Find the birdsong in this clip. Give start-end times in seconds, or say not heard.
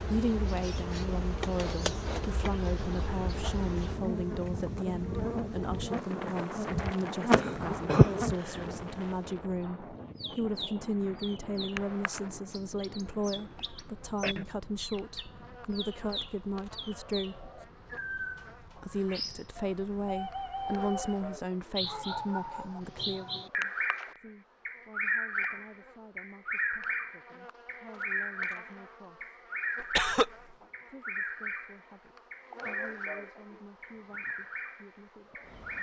10.2-35.7.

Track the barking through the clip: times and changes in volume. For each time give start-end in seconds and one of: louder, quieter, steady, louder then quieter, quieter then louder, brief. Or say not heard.
not heard.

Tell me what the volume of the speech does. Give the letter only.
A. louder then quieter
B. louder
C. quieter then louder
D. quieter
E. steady
D.